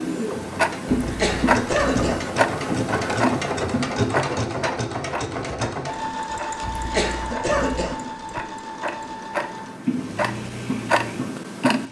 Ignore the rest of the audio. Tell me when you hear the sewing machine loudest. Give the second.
4 s.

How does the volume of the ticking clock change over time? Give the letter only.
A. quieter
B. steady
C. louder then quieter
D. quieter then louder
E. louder
D.